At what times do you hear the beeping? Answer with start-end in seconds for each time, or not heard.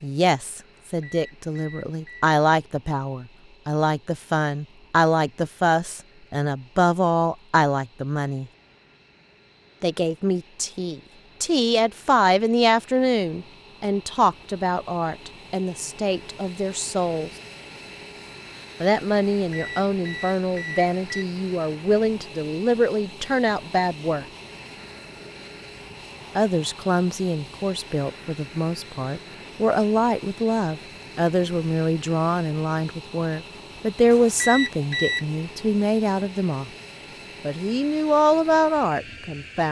0.8-2.3, 19.4-21.2, 34.1-35.2.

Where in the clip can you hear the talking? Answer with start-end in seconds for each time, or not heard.
0.0-8.5, 9.8-17.3, 18.8-24.2, 26.4-36.7, 37.4-39.6.